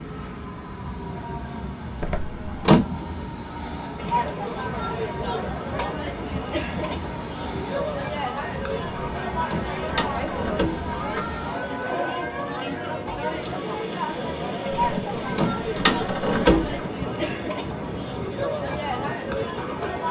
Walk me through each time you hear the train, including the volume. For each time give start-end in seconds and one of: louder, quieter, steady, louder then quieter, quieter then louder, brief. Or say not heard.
0.0-20.0 steady.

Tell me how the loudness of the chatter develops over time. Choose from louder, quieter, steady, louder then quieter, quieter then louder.
steady.